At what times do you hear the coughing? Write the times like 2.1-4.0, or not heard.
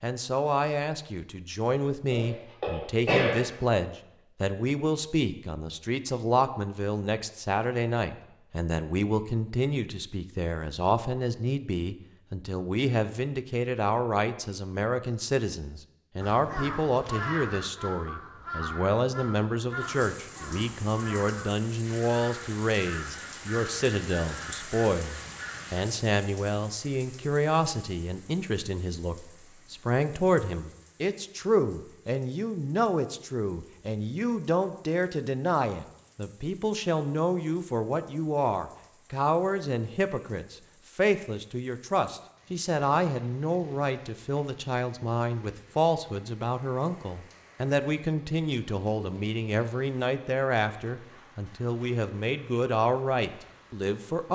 2.1-3.4.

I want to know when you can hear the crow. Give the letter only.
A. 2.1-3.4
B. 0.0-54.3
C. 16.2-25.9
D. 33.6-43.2
C.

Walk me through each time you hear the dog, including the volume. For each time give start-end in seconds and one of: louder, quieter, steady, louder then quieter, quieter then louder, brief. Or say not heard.
not heard.